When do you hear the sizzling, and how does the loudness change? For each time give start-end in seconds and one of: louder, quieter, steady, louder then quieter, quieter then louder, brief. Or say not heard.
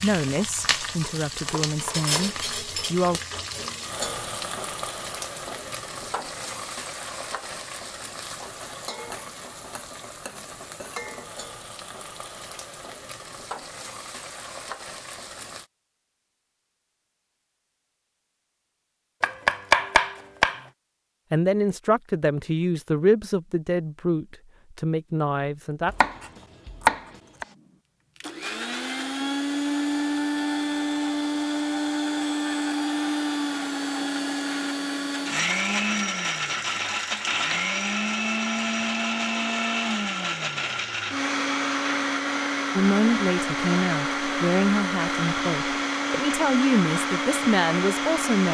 0.0-15.7 quieter.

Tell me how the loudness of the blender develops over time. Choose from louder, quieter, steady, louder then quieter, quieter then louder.
steady.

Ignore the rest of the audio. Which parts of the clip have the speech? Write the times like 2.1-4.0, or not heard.
0.0-3.2, 21.3-25.9, 42.8-48.5.